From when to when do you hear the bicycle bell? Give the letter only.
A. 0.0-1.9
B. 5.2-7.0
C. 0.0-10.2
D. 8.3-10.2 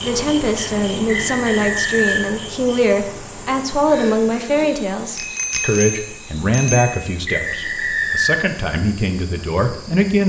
B.